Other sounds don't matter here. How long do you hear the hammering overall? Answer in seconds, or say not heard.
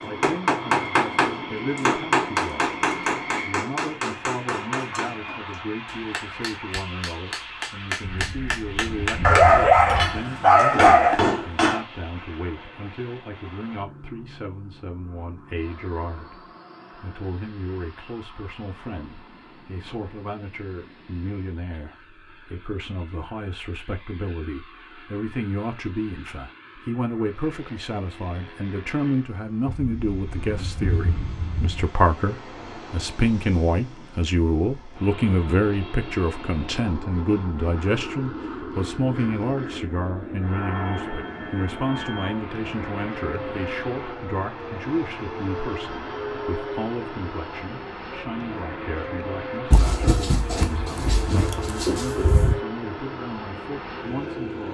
12 s.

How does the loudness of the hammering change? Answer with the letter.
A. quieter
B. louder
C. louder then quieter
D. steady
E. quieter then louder
E.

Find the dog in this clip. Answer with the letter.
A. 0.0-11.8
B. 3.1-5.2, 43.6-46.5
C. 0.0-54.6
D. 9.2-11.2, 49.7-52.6
D.